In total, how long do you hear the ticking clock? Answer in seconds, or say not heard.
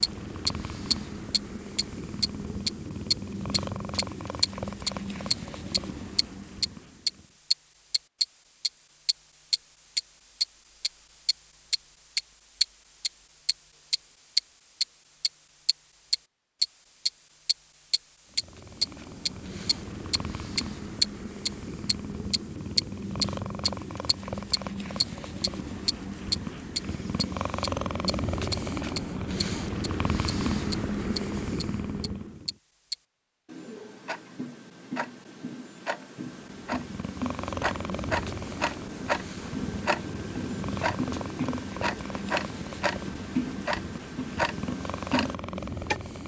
46 s.